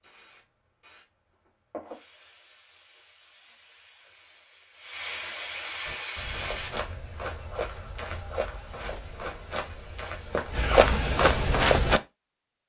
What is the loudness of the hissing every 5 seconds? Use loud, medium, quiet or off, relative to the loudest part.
quiet, loud, off.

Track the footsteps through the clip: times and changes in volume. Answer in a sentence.
The footsteps can be heard from 5.8 to 12.0 s, getting louder.